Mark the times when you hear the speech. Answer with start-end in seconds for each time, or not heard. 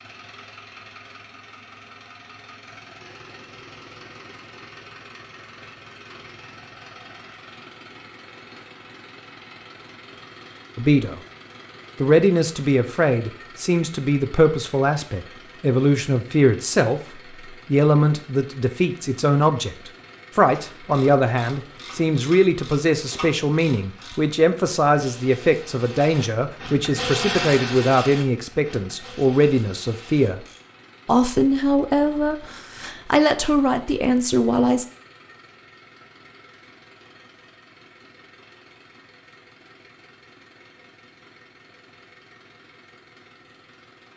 10.8-11.2, 12.0-17.0, 17.6-30.4, 31.1-34.9.